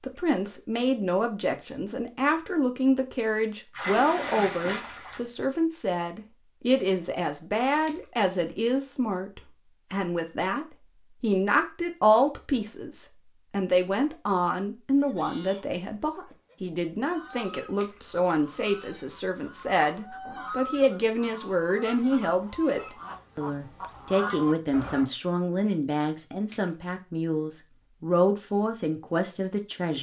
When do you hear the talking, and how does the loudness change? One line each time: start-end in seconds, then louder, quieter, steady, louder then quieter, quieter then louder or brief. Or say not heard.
0.0-29.9 steady.